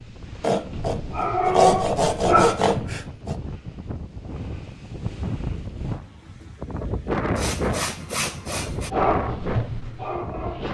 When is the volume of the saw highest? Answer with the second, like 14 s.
2 s.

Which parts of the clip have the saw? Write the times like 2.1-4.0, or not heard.
0.4-3.4, 7.3-8.9.